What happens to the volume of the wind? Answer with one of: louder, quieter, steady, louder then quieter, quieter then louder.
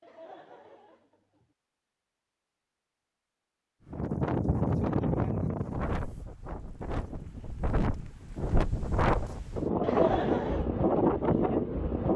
quieter then louder.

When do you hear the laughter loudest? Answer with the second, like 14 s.
10 s.